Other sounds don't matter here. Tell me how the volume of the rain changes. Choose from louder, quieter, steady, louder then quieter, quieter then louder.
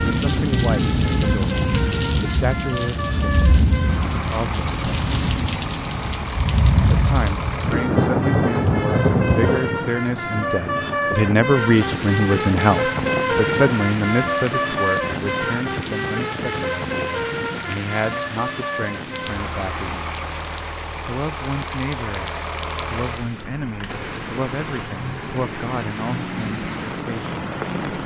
quieter.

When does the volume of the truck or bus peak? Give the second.
13 s.